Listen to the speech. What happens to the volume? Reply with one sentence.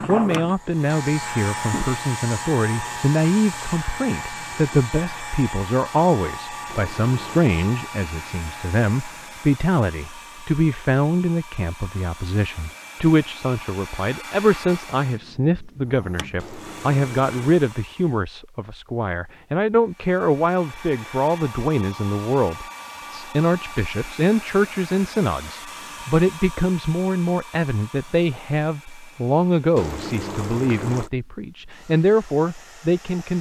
The loudness of the speech stays about the same.